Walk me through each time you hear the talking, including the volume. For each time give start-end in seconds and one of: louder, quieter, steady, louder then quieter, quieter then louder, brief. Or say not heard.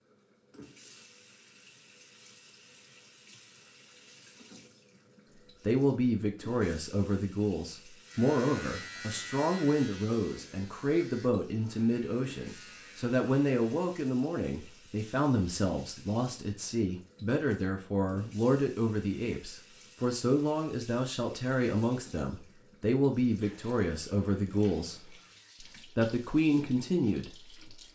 5.7-27.6 steady.